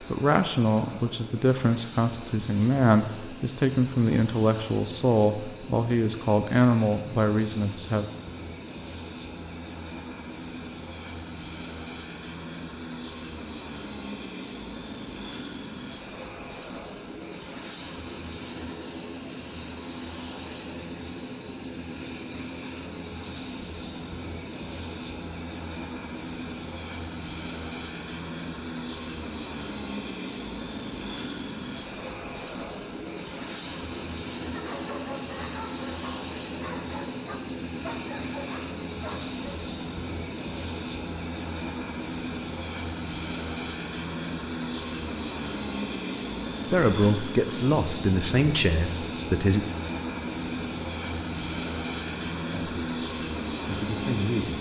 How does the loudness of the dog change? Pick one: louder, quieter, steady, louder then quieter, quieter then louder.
steady.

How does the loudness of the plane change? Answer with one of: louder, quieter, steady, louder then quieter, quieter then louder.
louder.